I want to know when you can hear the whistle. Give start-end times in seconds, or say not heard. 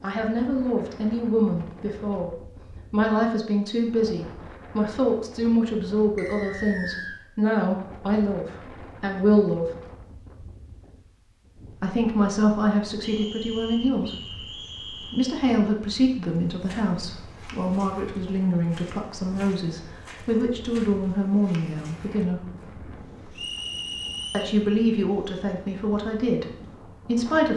6.2-7.2, 13.0-15.4, 23.4-24.6.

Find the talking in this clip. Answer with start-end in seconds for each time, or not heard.
0.0-9.7, 11.8-22.4, 24.3-27.5.